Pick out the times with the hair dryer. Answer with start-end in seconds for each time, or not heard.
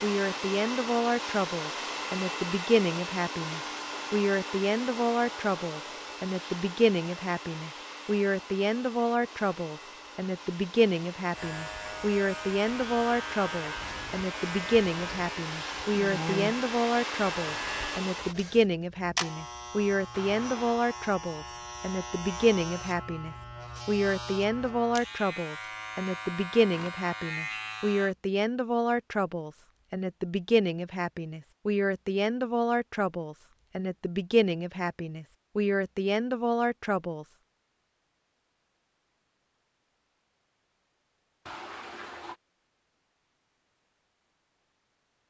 0.0-18.6.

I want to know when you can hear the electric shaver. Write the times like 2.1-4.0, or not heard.
11.3-28.1.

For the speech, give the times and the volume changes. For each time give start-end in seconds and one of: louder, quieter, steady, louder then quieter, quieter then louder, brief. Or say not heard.
0.0-37.2 steady.